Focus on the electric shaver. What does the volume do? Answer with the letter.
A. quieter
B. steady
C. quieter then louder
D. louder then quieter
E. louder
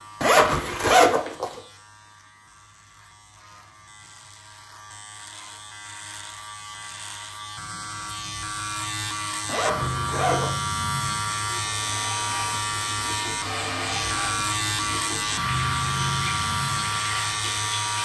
E.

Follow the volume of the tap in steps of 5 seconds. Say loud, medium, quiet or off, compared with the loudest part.
off, off, loud, loud.